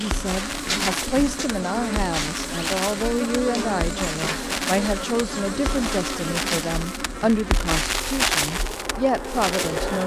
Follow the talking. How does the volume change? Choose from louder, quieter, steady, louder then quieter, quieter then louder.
steady.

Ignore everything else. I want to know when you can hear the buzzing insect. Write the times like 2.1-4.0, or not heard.
0.0-10.0.